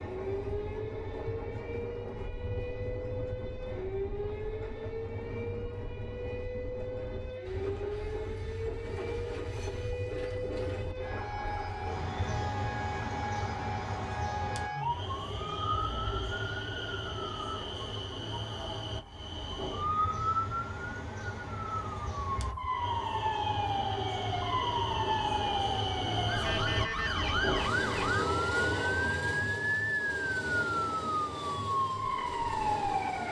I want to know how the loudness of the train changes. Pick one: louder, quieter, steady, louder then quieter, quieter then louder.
louder.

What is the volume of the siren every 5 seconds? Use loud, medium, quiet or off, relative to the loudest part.
medium, medium, medium, medium, loud, loud, loud.